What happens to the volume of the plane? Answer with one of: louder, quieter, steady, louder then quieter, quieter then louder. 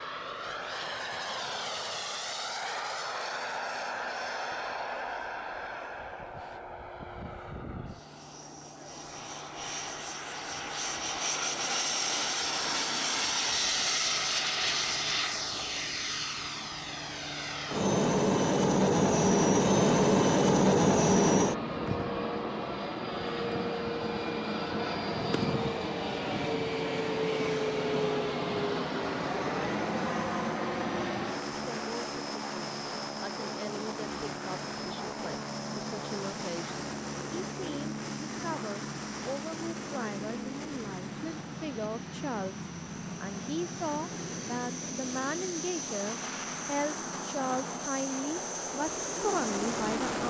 louder then quieter.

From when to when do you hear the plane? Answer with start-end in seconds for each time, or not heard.
0.0-50.2.